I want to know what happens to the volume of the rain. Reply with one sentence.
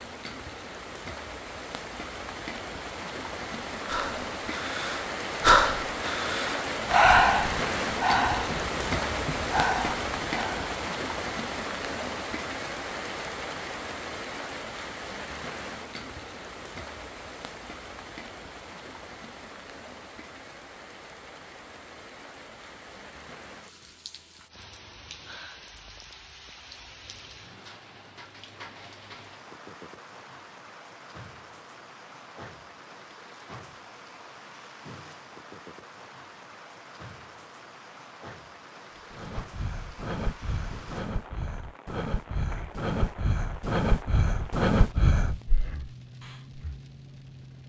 The loudness of the rain goes down.